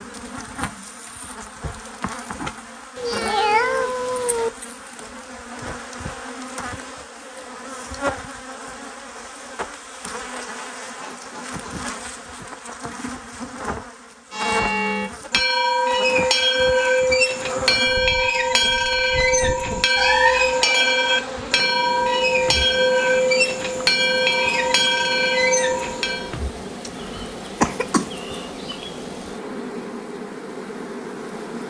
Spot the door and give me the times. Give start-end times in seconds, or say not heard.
not heard.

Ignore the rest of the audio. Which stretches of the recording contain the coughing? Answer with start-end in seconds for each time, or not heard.
26.9-28.1.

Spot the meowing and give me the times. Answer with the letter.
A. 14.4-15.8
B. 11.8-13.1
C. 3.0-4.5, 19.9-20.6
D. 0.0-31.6
C.